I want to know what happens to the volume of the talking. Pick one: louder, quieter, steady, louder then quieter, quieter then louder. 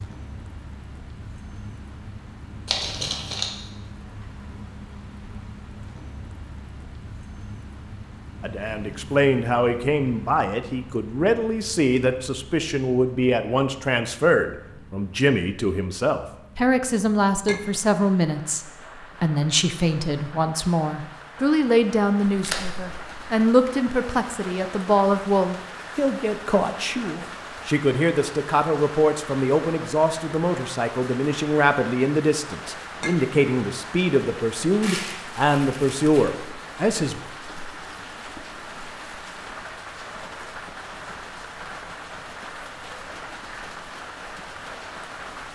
steady.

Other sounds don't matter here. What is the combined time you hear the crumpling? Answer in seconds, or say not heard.
3 s.